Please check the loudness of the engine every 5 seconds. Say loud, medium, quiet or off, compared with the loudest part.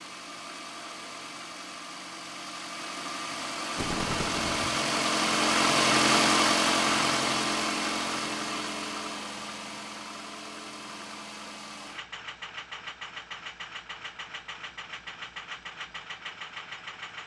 medium, loud, quiet, quiet.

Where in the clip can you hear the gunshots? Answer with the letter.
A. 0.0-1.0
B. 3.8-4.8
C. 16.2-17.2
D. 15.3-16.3
B.